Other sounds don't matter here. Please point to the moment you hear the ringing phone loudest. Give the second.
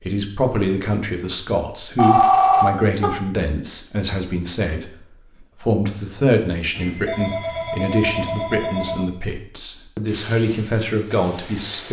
2 s.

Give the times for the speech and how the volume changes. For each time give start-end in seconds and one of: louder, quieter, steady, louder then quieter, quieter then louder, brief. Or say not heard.
0.0-11.8 steady.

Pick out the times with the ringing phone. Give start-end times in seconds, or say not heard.
1.9-3.1, 6.7-9.1.